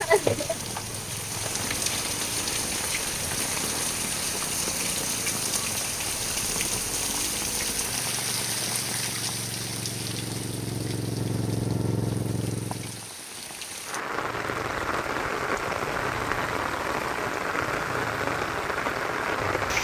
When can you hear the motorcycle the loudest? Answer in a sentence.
The loudest moment of the motorcycle is at 12 seconds.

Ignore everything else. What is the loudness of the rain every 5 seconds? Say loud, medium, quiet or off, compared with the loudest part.
loud, loud, medium, loud.